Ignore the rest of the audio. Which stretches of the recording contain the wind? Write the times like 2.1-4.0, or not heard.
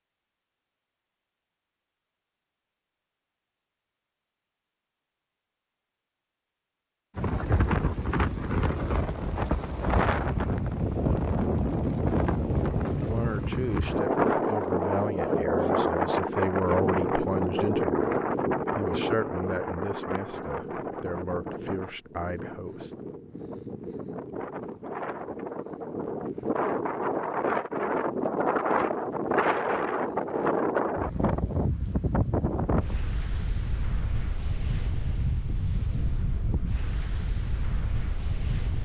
7.2-38.7.